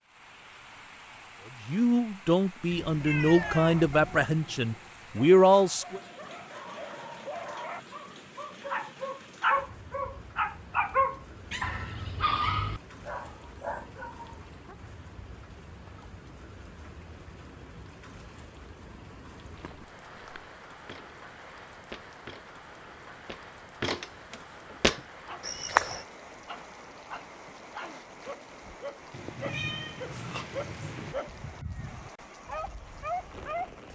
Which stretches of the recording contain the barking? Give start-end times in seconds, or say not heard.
3.0-14.3, 25.2-33.8.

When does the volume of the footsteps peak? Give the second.
26 s.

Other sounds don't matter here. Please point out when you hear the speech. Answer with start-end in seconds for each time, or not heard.
1.6-6.0.